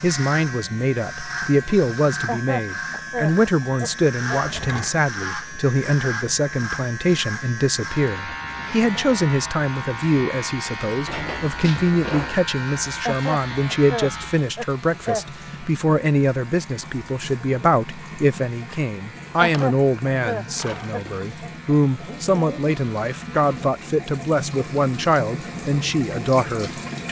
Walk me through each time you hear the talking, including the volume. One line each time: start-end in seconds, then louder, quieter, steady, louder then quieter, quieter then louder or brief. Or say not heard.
0.0-27.0 steady.